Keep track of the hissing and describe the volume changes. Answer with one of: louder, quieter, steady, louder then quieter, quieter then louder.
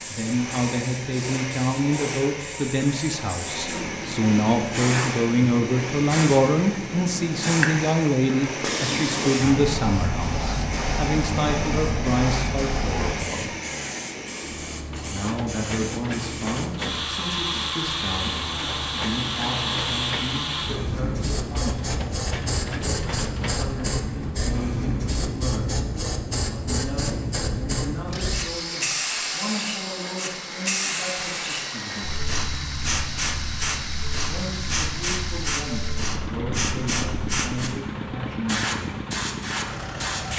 steady.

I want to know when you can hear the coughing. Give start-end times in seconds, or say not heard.
not heard.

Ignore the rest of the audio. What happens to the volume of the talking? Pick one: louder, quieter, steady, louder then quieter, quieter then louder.
quieter.